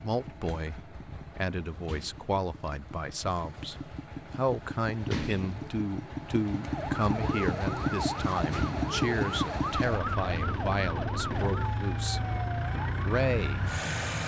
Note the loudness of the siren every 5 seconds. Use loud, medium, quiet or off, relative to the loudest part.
off, loud, loud.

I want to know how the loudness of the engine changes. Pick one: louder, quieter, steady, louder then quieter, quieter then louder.
louder.